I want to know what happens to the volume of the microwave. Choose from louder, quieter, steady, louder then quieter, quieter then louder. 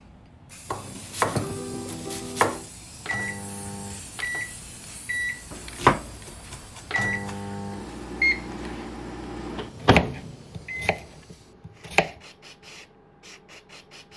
louder.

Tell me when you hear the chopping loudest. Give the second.
6 s.